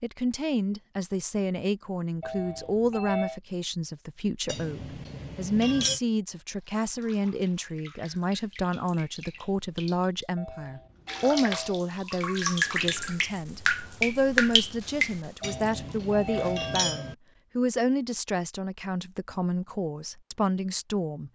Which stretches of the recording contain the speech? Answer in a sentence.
The speech can be heard from 0.0 to 21.3 s.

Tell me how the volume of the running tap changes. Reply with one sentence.
The loudness of the running tap goes up.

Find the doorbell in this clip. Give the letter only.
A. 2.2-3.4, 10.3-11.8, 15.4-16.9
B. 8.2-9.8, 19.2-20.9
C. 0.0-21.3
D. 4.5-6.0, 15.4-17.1
A.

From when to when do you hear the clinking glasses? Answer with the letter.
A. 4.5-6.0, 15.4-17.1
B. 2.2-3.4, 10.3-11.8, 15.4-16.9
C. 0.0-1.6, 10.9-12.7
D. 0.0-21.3
A.